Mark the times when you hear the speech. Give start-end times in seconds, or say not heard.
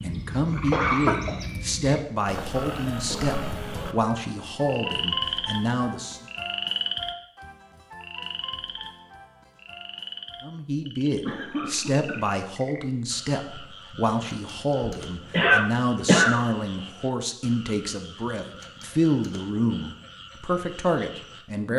0.0-6.2, 10.4-21.7.